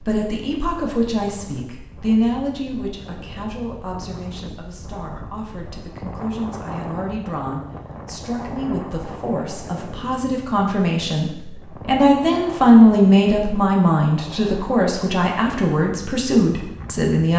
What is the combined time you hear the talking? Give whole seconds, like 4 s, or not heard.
17 s.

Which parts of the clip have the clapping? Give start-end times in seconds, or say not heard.
not heard.